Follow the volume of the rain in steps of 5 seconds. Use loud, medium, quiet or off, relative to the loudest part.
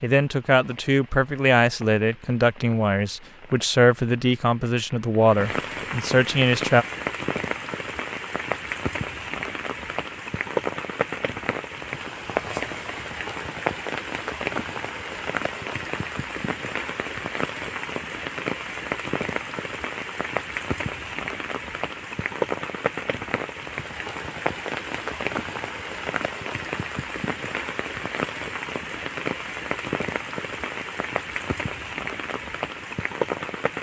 quiet, loud, loud, loud, loud, loud, loud.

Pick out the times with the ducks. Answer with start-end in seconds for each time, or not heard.
not heard.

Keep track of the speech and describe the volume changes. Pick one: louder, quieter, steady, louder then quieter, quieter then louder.
steady.